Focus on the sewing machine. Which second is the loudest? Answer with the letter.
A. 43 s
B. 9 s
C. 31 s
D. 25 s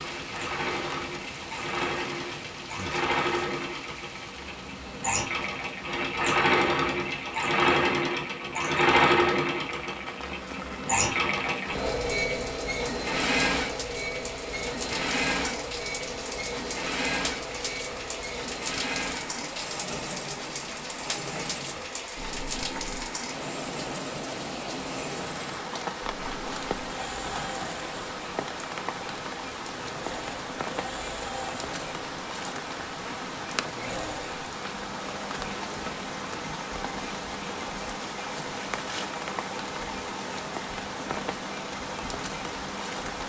B.